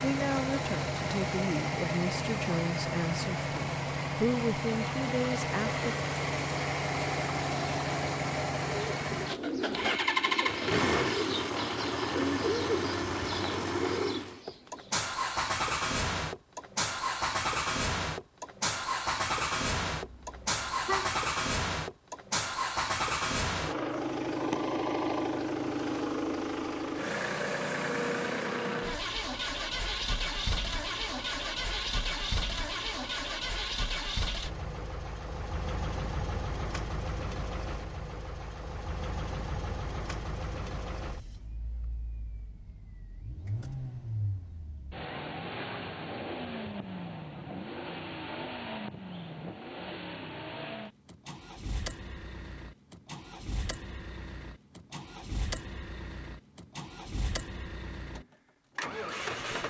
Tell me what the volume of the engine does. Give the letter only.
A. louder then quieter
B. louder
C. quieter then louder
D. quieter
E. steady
D.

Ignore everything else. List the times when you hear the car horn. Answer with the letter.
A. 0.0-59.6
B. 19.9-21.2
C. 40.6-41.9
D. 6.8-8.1
B.